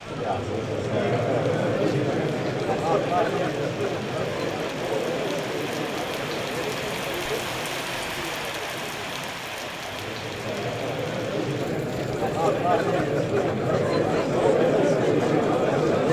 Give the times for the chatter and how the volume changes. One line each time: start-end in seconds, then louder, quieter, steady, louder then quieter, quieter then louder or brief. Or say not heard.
0.0-16.0 quieter then louder.